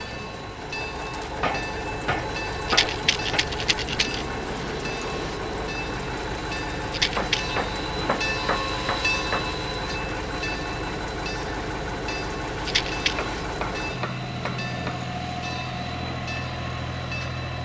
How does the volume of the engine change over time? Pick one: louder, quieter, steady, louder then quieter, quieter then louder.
steady.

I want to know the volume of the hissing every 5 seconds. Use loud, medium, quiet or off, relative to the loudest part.
medium, loud, medium, medium.